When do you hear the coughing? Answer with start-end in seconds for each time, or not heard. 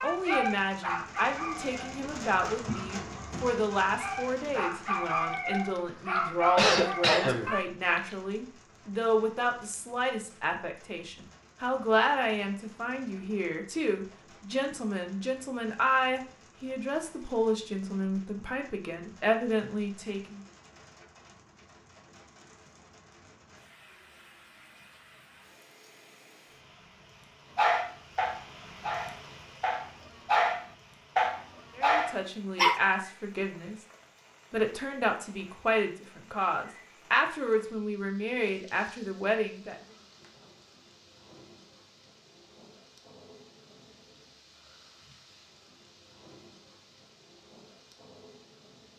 6.2-8.0.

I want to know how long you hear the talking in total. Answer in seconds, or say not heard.
28 s.